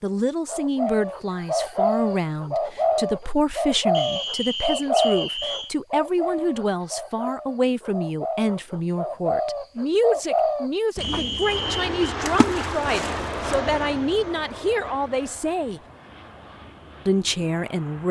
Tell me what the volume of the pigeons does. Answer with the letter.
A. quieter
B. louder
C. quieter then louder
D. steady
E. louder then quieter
C.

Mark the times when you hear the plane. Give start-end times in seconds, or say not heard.
11.4-18.0.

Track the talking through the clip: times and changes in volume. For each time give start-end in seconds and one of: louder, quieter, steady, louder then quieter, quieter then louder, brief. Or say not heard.
0.0-15.8 steady
17.1-18.0 brief.